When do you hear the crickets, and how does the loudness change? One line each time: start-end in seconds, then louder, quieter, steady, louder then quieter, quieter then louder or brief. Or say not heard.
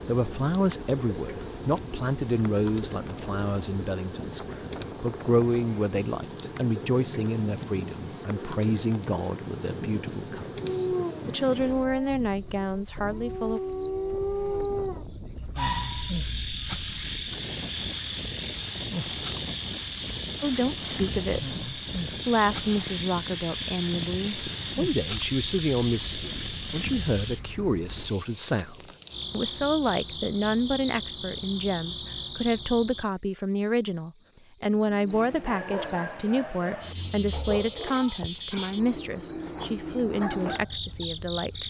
0.0-41.6 steady.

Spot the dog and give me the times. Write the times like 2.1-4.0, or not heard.
10.6-16.6, 35.0-41.0.